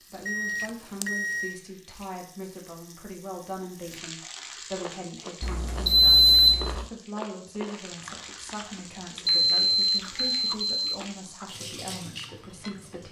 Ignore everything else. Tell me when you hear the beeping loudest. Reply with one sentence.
The loudest moment of the beeping is at 6 seconds.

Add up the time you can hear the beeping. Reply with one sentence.
The beeping can be heard for 4 seconds in total.